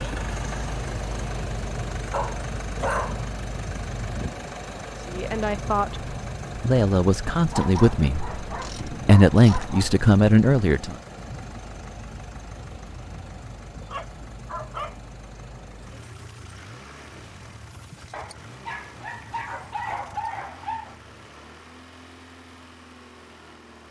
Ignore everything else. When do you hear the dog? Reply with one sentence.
The dog can be heard from 2.1 to 3.2 s, from 7.5 to 9.9 s, from 13.8 to 14.9 s and from 18.1 to 20.9 s.